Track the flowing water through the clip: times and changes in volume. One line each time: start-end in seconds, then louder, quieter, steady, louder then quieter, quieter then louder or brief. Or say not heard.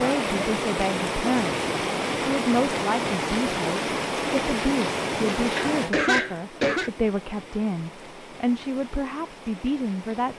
0.0-10.3 quieter.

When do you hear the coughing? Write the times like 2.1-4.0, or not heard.
5.5-6.9.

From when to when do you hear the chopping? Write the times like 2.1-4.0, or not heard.
not heard.